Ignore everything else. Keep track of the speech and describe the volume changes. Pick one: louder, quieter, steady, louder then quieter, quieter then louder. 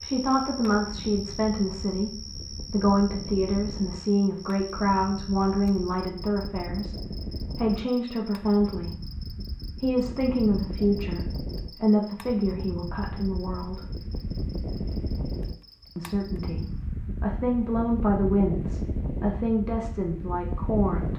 steady.